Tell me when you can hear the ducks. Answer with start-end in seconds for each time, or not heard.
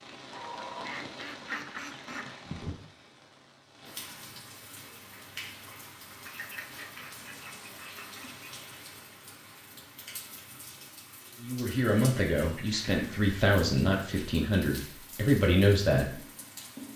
0.3-2.4, 6.2-8.6, 11.7-13.2.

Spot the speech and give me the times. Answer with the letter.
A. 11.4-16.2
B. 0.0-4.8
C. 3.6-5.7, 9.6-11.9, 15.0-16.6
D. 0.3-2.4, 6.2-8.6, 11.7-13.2
A.